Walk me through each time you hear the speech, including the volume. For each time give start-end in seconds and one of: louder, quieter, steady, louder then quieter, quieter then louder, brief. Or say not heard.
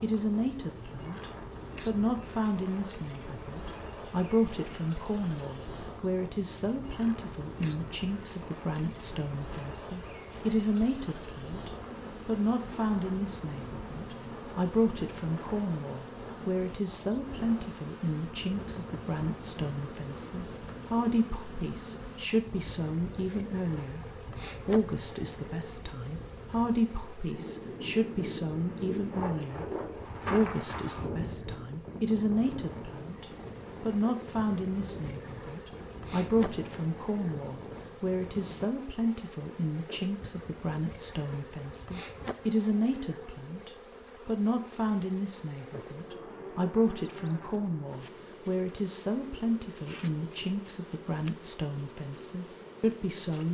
0.0-53.5 steady.